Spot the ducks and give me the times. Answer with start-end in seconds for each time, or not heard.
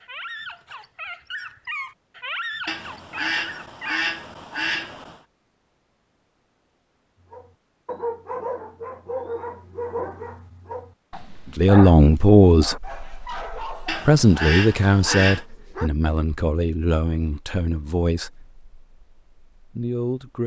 2.6-5.2, 13.8-15.4.